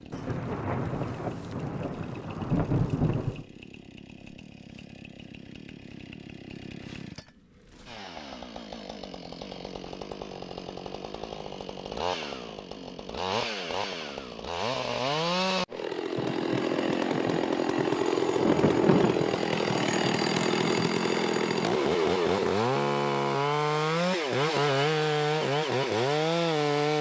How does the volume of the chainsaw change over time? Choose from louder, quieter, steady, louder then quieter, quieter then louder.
louder.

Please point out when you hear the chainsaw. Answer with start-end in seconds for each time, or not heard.
0.0-26.9.